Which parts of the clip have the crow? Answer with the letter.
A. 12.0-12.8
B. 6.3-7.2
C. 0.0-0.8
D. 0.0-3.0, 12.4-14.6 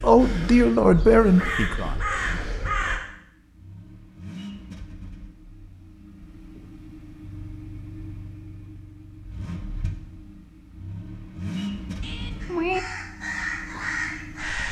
D.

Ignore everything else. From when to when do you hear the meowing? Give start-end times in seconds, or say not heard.
12.0-12.8.